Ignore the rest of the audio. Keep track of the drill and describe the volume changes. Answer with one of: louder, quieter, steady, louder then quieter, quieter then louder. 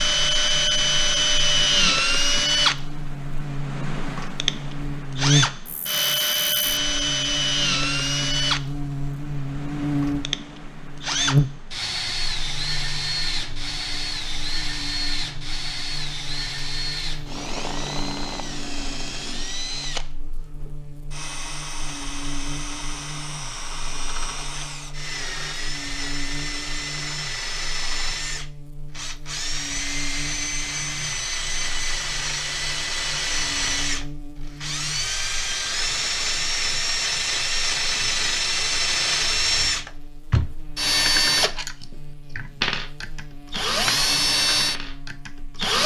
quieter then louder.